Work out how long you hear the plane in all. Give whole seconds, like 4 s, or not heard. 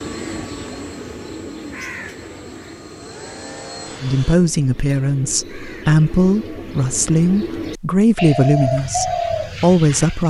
4 s.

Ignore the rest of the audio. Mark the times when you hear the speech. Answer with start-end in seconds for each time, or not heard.
4.0-10.2.